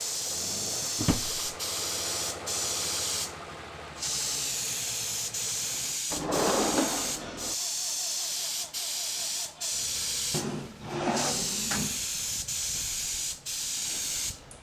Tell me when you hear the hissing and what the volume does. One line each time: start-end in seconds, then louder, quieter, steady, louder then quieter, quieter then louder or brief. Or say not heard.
0.0-14.5 steady.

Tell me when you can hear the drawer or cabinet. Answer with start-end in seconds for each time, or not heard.
0.9-1.4, 6.1-7.5, 10.3-12.0.